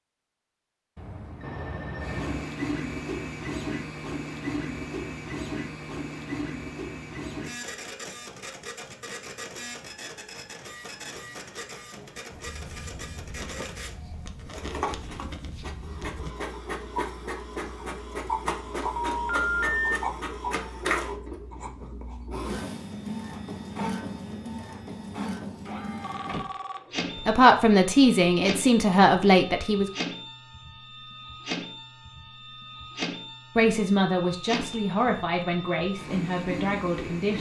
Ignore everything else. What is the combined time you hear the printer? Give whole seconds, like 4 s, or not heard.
35 s.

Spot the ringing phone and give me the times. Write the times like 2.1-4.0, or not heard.
0.9-2.5, 18.9-19.9, 26.0-27.4.